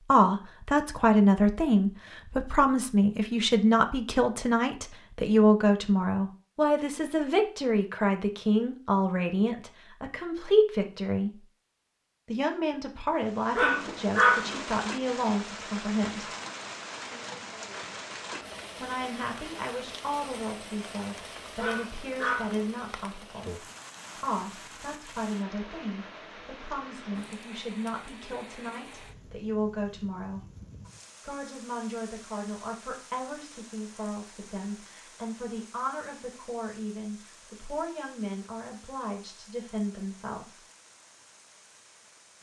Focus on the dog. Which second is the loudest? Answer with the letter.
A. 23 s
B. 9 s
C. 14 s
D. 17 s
C.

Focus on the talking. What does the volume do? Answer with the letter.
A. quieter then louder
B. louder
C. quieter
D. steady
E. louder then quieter
C.